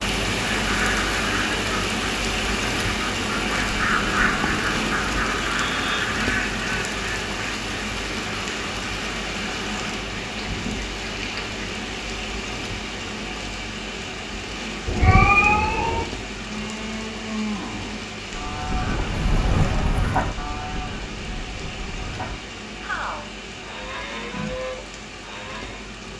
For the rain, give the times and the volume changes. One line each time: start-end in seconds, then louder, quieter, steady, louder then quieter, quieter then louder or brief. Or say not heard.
0.0-26.1 quieter.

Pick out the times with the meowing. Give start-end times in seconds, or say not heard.
3.6-4.7, 14.8-16.1.